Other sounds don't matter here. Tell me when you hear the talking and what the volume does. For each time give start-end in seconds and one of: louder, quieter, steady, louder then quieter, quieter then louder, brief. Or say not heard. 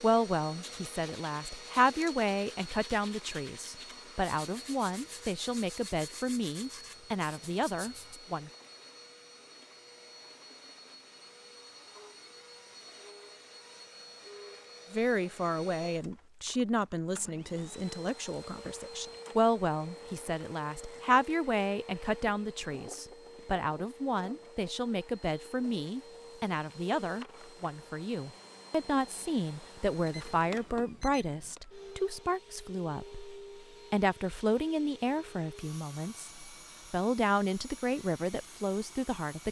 0.0-8.5 steady
14.9-39.4 steady.